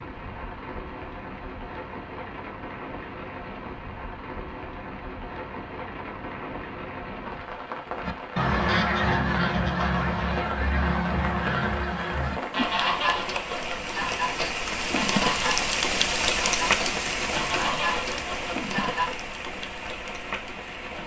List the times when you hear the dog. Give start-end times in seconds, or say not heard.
not heard.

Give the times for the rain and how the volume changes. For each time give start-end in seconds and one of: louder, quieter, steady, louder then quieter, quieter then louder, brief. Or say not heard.
0.0-21.0 louder.